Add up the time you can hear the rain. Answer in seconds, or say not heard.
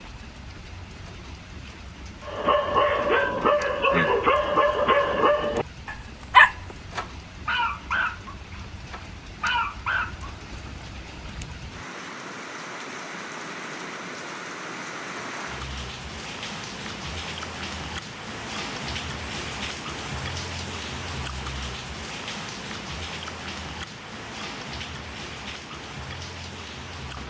27 s.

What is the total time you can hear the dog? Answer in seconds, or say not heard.
8 s.